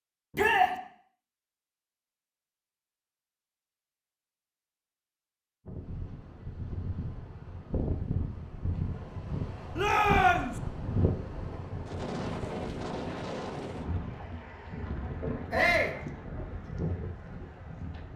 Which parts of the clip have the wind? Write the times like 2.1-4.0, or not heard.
5.7-18.1.